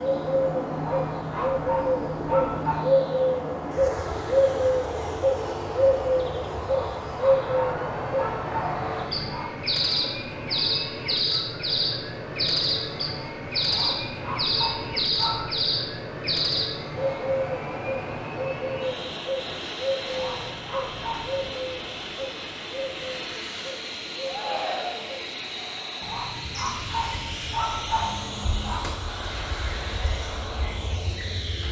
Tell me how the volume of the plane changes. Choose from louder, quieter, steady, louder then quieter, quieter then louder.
steady.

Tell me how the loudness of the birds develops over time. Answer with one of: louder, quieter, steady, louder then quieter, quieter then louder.
quieter.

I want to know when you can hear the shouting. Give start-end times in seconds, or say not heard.
24.2-25.1.